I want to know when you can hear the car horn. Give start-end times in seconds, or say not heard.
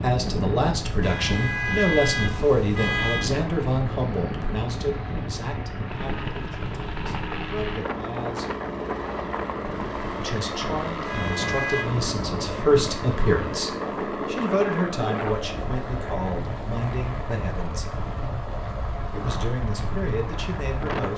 1.0-3.3, 11.1-11.8.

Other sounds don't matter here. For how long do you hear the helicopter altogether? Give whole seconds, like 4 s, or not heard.
21 s.